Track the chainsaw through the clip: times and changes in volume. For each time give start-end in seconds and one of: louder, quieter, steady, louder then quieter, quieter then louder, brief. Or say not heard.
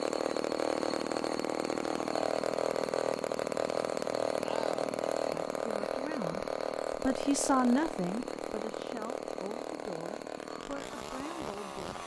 0.0-12.0 quieter.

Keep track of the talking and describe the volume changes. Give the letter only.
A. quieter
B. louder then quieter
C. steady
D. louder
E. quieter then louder
B.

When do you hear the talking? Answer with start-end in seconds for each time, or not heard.
5.5-11.9.